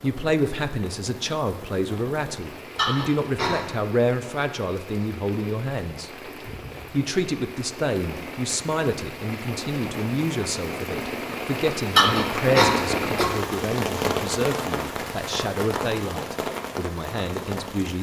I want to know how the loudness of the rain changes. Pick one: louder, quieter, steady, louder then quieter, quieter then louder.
louder.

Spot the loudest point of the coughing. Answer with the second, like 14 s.
12 s.